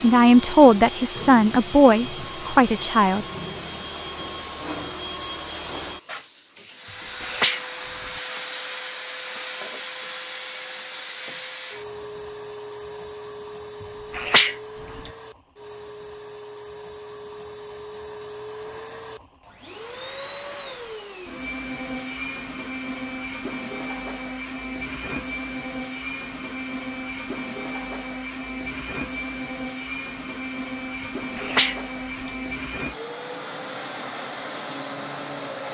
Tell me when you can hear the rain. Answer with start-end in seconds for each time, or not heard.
not heard.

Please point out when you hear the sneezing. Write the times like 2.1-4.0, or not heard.
7.2-8.2, 14.1-15.1, 31.4-32.3.